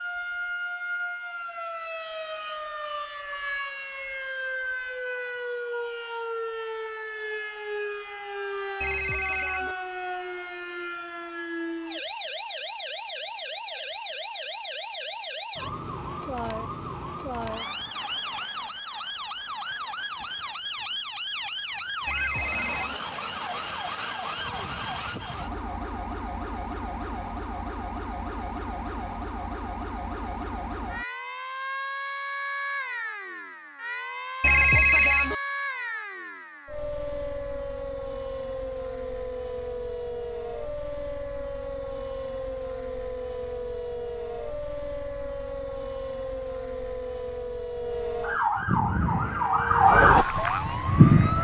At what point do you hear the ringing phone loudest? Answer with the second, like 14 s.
35 s.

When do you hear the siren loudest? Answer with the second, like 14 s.
50 s.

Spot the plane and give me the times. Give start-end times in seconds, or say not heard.
48.5-51.3.